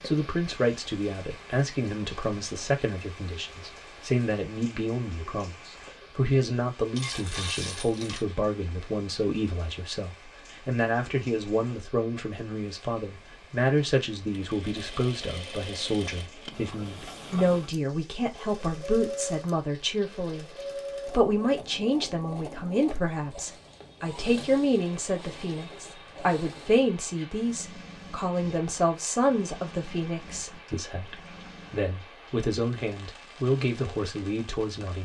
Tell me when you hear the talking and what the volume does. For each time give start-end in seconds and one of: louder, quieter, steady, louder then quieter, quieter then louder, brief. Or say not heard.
0.1-35.0 steady.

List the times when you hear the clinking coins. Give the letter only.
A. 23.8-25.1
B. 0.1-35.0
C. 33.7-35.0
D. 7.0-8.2
D.